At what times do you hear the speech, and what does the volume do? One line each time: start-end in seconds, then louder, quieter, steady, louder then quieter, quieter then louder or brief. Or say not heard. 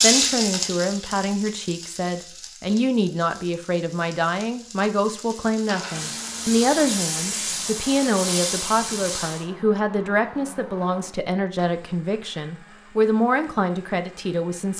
0.0-14.7 steady.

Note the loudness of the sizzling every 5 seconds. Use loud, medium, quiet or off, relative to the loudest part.
loud, loud, off.